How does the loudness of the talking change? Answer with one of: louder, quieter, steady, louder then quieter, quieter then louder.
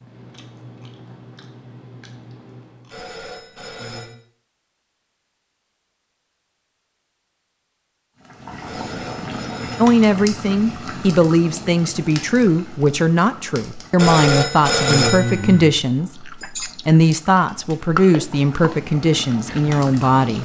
steady.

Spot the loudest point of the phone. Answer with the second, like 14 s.
15 s.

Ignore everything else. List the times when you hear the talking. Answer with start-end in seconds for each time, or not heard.
9.8-20.3.